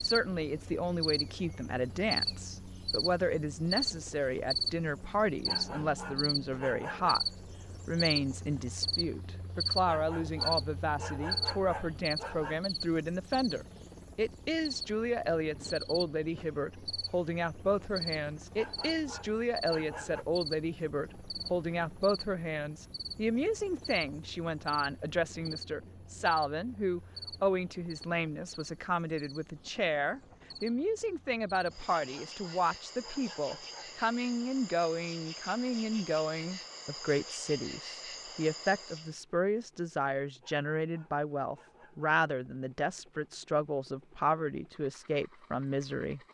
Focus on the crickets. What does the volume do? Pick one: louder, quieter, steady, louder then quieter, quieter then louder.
quieter.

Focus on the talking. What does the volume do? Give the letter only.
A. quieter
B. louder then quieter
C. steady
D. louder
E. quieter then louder
C.